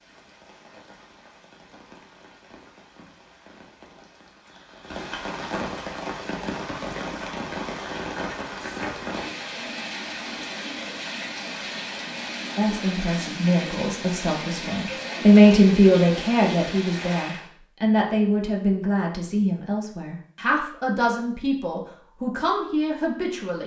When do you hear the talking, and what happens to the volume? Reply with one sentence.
You can hear the talking from 12.6 to 23.6 s, getting louder then quieter.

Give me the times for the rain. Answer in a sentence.
The rain can be heard from 0.0 to 17.5 s.